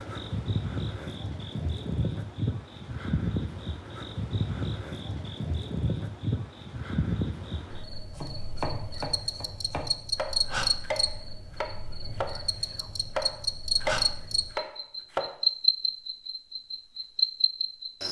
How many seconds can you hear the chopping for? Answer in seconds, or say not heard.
7 s.